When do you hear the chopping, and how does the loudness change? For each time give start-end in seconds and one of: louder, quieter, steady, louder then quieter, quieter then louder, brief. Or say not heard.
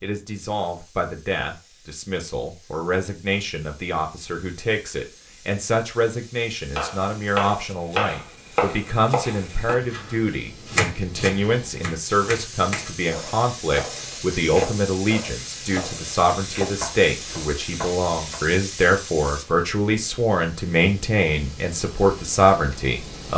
6.7-18.4 quieter.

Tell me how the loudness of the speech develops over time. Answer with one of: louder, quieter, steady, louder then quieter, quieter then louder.
louder.